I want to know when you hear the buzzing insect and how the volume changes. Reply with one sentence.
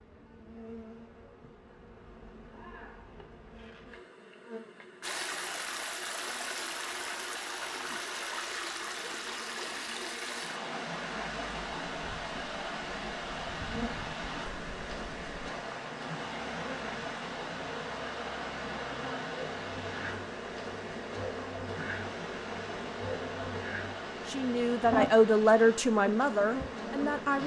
You can hear the buzzing insect from 0.0 to 27.4 s, getting louder.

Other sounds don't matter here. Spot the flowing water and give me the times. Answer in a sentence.
The flowing water can be heard from 5.0 to 27.4 s.